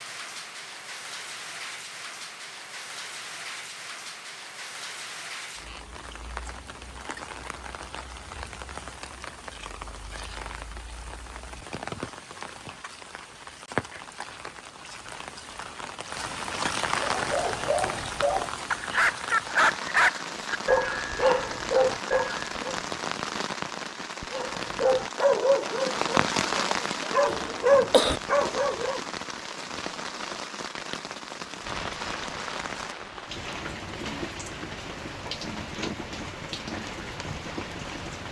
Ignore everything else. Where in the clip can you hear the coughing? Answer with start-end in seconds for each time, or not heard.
27.2-28.2.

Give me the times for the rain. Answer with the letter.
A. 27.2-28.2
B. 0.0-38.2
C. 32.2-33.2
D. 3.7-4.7
B.